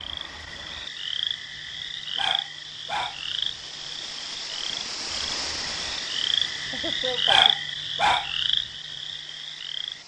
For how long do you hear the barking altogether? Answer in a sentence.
The barking can be heard for 2 seconds in total.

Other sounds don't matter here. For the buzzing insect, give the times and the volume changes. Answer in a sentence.
The buzzing insect can't be heard in this clip.